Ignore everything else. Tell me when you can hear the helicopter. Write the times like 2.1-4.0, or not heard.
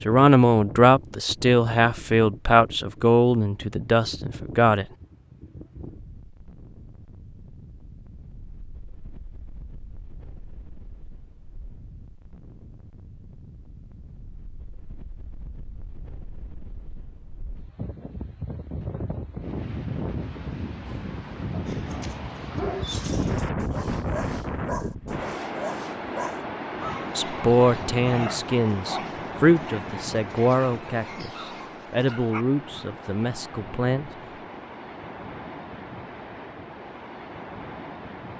not heard.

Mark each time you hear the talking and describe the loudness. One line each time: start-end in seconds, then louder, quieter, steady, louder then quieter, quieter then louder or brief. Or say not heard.
0.1-4.8 quieter
27.1-34.1 quieter.